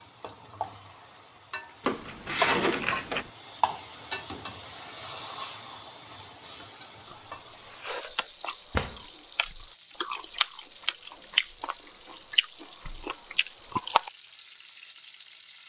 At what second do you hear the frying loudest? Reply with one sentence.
The volume of the frying peaks at 4 seconds.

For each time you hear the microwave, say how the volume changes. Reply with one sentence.
You can't hear the microwave here.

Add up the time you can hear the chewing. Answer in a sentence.
The chewing can be heard for 7 seconds in total.